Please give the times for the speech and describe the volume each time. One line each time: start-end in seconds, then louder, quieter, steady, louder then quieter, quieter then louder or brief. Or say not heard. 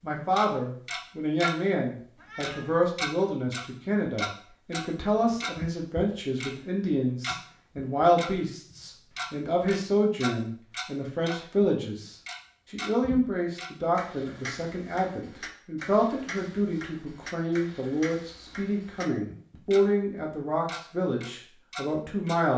0.0-22.5 steady.